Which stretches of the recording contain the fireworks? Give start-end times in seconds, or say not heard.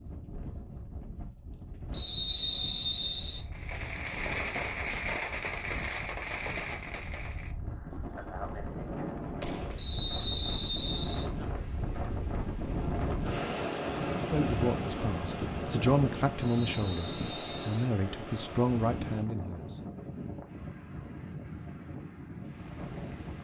3.5-9.9.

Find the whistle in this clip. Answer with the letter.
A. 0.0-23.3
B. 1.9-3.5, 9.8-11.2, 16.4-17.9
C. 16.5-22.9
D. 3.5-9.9
B.